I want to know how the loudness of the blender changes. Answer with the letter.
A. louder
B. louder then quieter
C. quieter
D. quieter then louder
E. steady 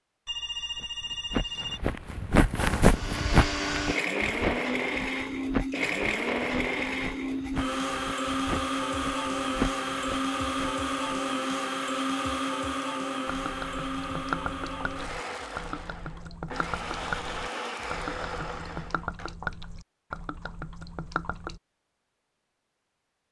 C.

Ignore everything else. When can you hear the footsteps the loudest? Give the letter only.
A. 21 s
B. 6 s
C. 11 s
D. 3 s
D.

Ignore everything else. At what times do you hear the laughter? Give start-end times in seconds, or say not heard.
not heard.